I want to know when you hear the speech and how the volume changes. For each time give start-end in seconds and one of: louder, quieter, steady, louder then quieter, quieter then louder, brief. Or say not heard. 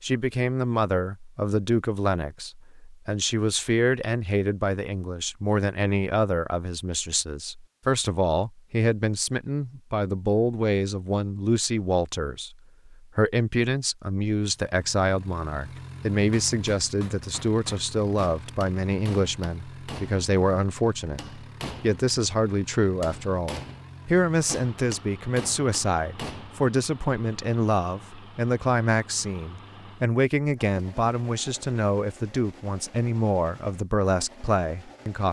0.0-35.2 steady.